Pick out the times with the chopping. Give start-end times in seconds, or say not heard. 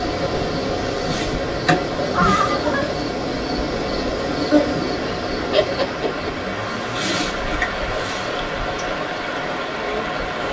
not heard.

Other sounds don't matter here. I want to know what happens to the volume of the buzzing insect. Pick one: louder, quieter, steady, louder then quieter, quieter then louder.
quieter.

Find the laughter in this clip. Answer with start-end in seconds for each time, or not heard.
2.1-2.9, 5.5-6.3.